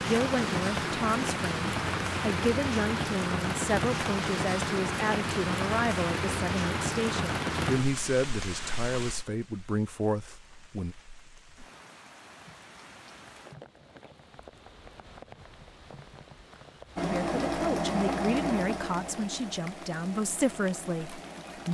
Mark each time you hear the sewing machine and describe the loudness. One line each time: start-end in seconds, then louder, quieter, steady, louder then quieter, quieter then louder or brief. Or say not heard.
16.9-21.6 quieter.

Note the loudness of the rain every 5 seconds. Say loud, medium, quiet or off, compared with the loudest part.
loud, loud, quiet, quiet, quiet.